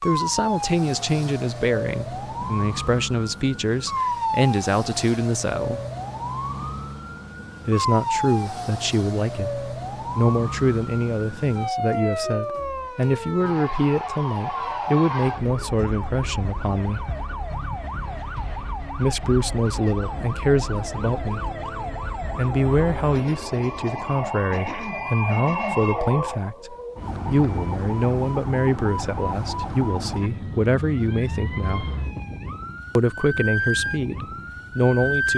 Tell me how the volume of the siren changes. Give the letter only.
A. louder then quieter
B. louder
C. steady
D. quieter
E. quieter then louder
C.